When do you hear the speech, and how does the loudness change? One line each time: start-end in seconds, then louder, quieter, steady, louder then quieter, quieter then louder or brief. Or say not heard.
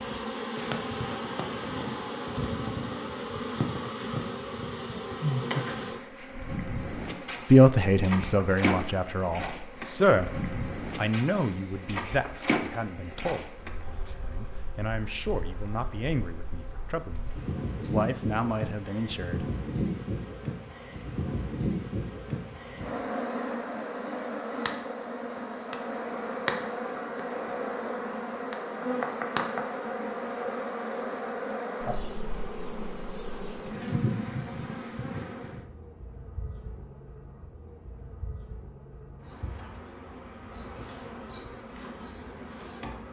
7.5-19.4 quieter then louder.